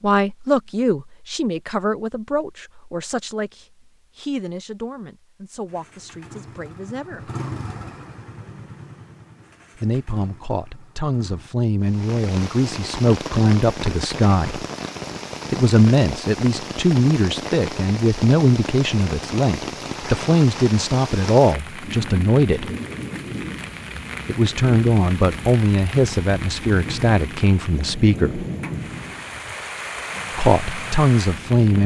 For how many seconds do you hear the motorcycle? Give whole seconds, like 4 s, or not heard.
6 s.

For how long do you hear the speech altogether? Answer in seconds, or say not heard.
25 s.